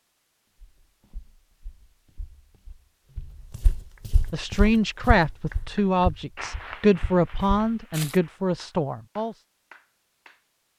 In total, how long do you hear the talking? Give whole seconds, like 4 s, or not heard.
5 s.